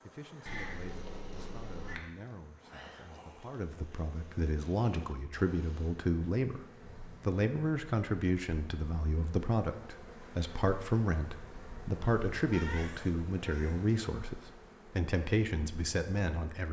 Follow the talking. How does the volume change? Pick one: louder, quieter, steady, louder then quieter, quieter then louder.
louder.